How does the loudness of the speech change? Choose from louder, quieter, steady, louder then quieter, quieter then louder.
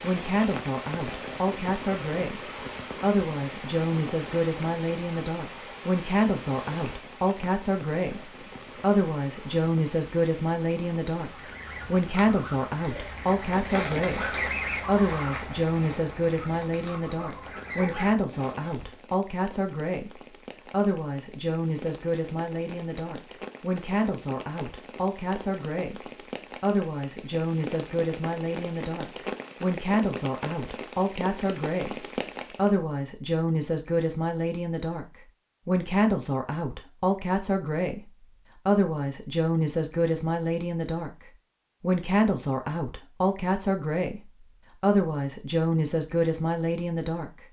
steady.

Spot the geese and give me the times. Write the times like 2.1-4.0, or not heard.
11.2-18.9.